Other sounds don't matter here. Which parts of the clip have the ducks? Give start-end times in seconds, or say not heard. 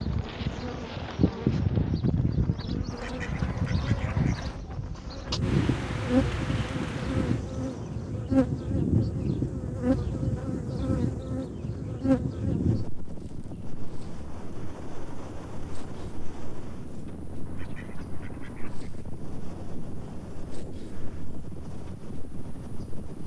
2.9-4.6, 17.4-18.9.